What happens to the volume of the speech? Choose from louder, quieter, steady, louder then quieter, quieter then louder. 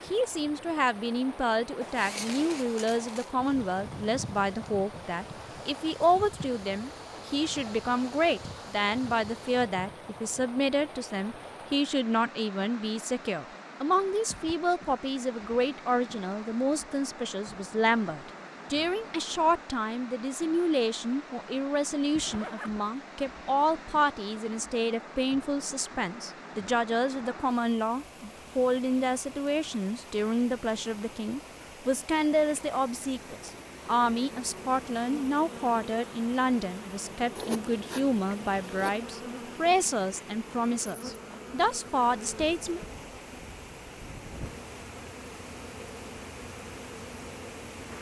steady.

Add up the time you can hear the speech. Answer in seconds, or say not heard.
43 s.